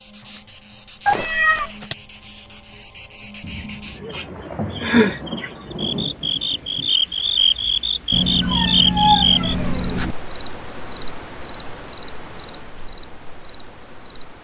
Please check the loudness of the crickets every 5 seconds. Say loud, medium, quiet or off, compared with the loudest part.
medium, loud, medium.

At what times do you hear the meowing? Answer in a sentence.
The meowing can be heard from 1.1 to 1.9 s and from 8.1 to 10.2 s.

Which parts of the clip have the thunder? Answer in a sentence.
You can hear the thunder from 3.4 to 7.0 s.